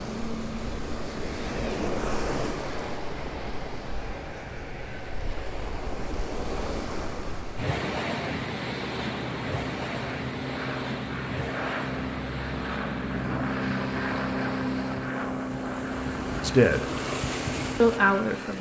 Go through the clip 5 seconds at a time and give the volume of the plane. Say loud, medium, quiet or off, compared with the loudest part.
medium, medium, loud, loud.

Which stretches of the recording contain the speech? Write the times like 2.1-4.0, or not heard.
16.4-16.9, 17.8-18.5.